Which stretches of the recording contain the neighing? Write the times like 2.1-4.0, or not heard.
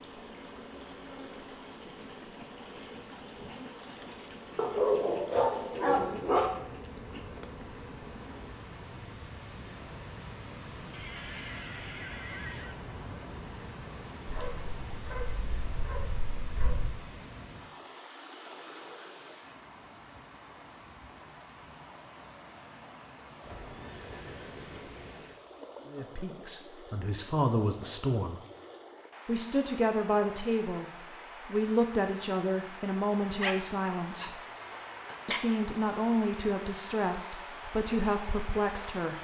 10.9-12.8, 23.4-25.2.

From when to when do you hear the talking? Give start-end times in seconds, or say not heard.
25.9-28.4, 29.2-34.4, 35.2-39.2.